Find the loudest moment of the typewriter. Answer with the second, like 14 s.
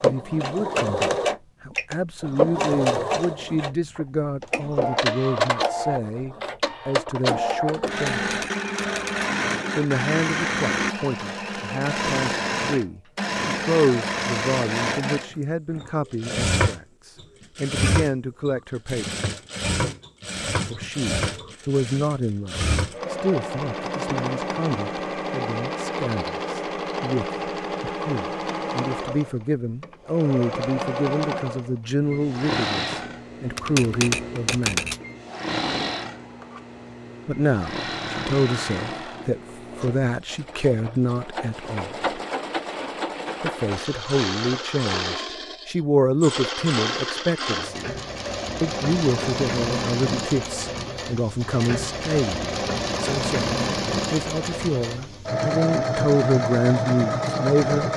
35 s.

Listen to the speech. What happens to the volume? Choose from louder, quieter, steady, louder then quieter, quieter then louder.
steady.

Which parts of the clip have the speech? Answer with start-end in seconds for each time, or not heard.
0.0-8.3, 9.8-19.2, 20.6-34.9, 37.2-42.0, 43.4-47.9, 48.6-57.9.